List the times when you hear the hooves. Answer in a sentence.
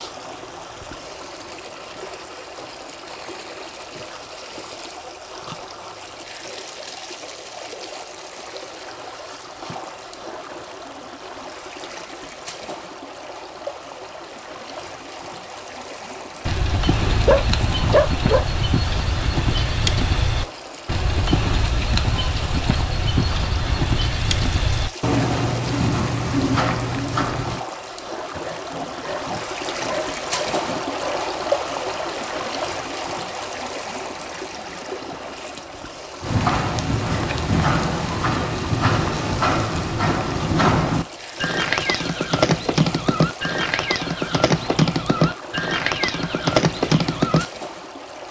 The hooves can be heard from 16.4 to 27.6 s and from 36.2 to 47.5 s.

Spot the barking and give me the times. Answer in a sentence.
The barking can be heard from 17.1 to 18.6 s and from 28.4 to 31.2 s.